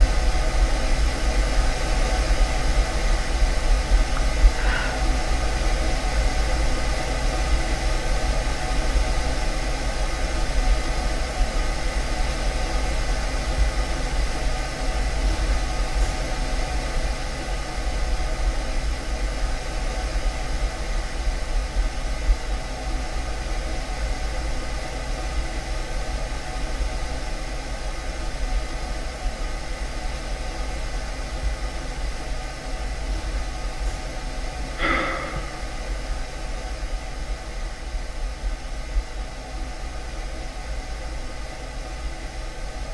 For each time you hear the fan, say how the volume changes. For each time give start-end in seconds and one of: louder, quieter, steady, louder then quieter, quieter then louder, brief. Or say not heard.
0.0-42.9 quieter.